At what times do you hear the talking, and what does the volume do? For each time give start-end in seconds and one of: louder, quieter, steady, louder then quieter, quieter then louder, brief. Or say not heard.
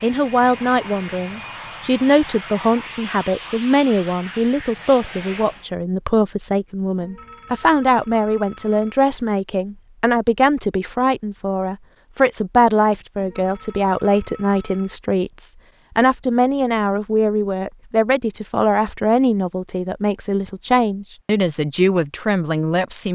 0.0-23.1 steady.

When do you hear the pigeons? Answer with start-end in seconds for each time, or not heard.
not heard.